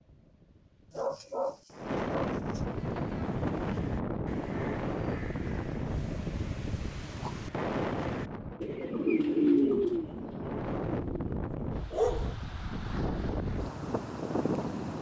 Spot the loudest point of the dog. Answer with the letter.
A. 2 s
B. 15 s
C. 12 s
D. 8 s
C.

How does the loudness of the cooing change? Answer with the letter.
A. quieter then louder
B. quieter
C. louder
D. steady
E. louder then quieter
C.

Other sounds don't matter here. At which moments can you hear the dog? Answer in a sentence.
The dog can be heard from 0.9 to 2.6 s and from 11.9 to 12.3 s.